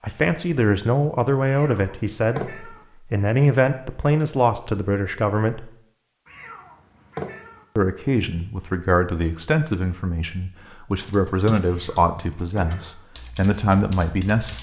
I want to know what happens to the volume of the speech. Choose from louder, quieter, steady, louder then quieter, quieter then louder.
steady.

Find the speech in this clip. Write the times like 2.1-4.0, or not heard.
0.0-5.7, 7.8-14.5.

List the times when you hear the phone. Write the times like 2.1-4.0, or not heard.
not heard.